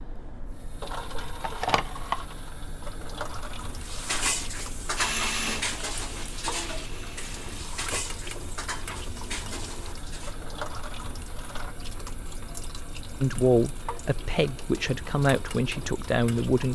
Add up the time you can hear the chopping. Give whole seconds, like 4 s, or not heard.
not heard.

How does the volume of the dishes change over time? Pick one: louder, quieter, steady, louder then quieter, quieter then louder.
quieter.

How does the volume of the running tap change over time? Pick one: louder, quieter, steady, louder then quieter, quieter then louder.
quieter.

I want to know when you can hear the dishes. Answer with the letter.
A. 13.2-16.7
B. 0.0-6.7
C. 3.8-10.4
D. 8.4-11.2
C.